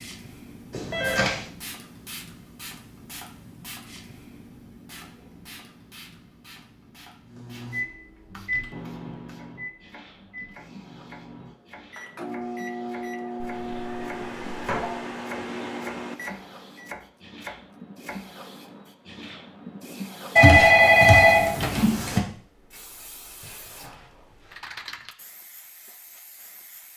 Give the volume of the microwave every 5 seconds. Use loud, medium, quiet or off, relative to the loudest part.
off, loud, loud, loud, off, off.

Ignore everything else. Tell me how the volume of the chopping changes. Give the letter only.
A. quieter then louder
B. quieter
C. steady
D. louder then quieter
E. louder
E.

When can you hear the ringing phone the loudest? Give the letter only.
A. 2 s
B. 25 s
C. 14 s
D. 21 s
D.